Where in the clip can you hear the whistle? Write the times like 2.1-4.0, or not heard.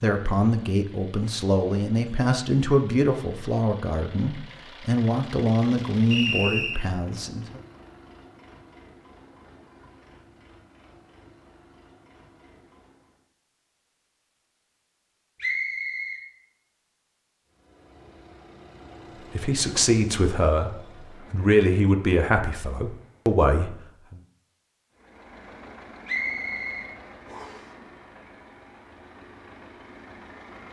6.1-6.8, 15.4-16.2, 26.1-27.6.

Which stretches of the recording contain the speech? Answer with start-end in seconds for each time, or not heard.
0.0-7.6, 19.4-24.2.